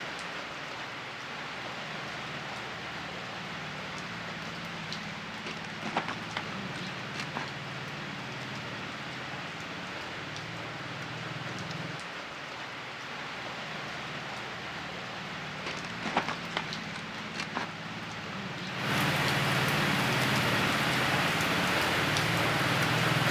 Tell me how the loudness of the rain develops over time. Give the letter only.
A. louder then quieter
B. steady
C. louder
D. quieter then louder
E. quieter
C.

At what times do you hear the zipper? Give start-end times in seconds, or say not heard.
not heard.